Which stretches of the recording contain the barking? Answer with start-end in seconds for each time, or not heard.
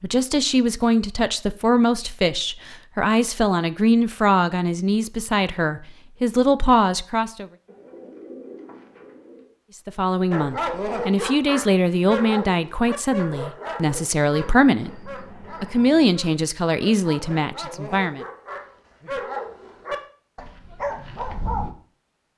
10.3-21.7.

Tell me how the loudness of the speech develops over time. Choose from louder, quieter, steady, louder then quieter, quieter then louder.
steady.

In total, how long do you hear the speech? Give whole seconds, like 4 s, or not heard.
16 s.